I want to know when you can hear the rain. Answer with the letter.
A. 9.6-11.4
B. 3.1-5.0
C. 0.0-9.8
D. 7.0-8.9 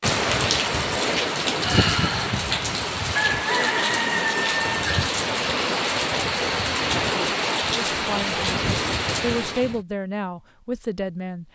C.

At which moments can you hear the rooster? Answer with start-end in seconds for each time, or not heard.
3.1-5.0.